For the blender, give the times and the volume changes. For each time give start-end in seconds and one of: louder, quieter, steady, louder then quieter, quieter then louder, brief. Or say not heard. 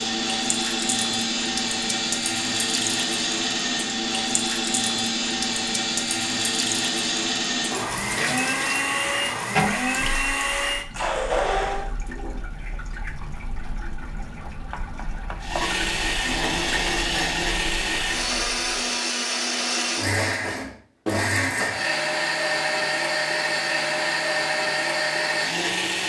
0.0-11.9 steady
15.4-26.0 steady.